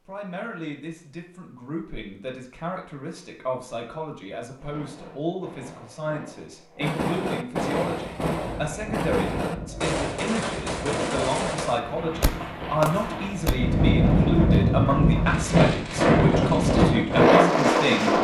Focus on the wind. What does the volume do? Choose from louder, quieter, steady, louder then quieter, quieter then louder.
louder.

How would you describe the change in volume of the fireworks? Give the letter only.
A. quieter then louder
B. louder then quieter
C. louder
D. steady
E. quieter
C.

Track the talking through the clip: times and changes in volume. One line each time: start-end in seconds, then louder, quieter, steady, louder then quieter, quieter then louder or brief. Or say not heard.
0.1-18.2 louder.